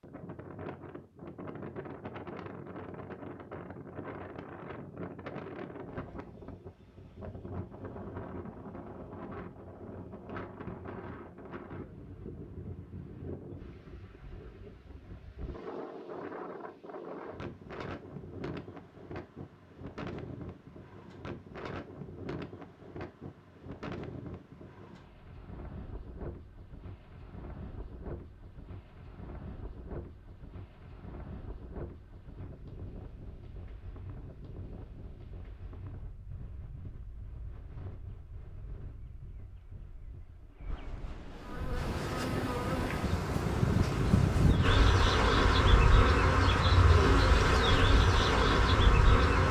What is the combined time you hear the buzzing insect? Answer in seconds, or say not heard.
8 s.